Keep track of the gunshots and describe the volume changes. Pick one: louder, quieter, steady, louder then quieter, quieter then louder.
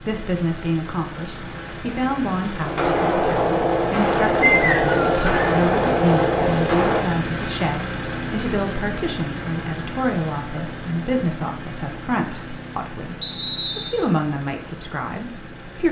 steady.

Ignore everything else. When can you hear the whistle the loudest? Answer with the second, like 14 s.
5 s.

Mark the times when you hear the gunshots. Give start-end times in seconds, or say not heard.
2.6-7.0.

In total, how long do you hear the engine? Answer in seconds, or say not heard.
16 s.